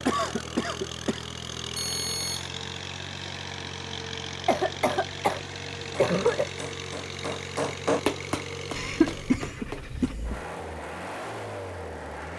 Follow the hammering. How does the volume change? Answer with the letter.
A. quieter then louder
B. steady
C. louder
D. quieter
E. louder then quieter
E.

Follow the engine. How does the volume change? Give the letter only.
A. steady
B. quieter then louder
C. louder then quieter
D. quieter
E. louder
A.